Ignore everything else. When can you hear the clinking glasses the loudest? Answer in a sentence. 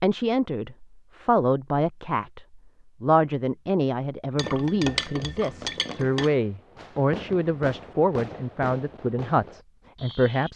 The volume of the clinking glasses peaks at 5 seconds.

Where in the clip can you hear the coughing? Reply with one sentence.
The coughing can't be heard in this clip.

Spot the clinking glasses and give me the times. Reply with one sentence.
The clinking glasses can be heard from 4.3 to 6.3 s.